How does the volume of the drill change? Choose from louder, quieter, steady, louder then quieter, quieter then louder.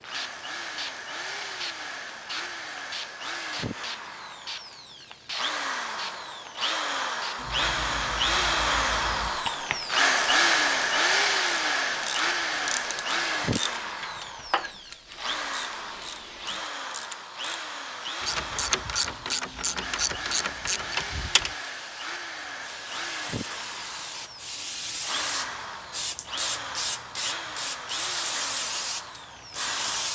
louder then quieter.